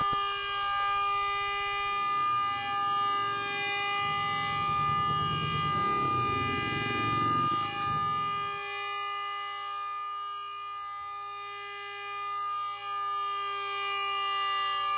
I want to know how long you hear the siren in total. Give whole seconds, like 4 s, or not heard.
15 s.